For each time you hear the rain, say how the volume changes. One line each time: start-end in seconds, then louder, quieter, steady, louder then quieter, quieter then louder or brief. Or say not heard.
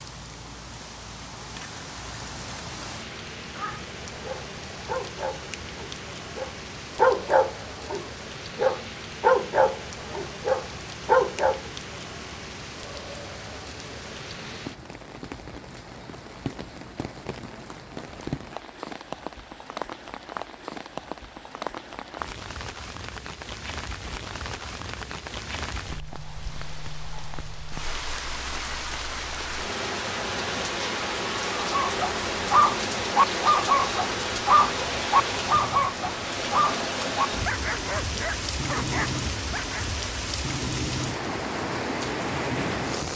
0.0-43.1 louder.